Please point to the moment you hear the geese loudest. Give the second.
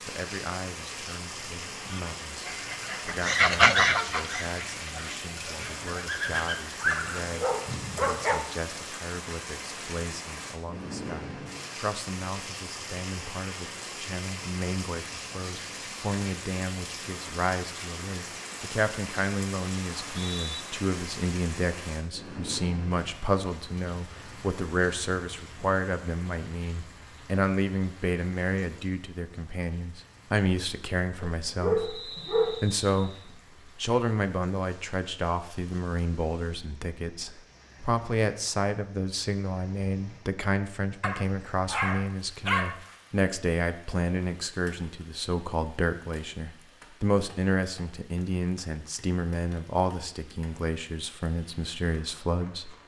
4 s.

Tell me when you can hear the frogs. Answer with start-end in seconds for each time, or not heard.
not heard.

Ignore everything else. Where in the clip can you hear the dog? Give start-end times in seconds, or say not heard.
6.8-8.4, 31.2-32.7, 41.0-42.8.